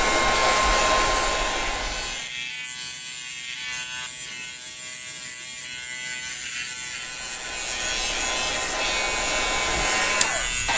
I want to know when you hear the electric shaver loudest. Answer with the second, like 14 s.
10 s.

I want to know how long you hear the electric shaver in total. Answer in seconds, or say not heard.
11 s.